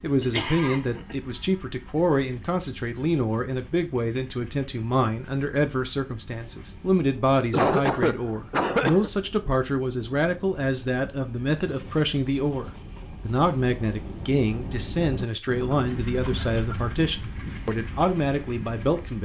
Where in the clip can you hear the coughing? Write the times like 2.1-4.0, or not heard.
0.2-1.1, 7.5-9.1, 15.7-16.9.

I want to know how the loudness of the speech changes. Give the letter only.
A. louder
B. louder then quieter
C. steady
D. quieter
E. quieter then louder
C.